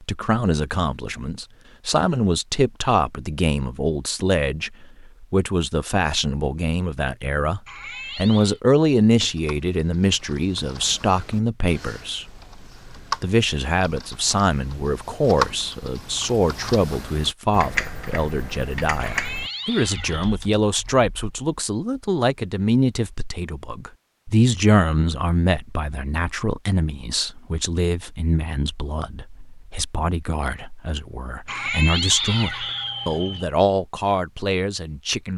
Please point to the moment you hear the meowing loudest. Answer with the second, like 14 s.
32 s.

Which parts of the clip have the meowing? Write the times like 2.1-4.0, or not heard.
7.7-8.6, 18.9-20.4, 31.4-33.5.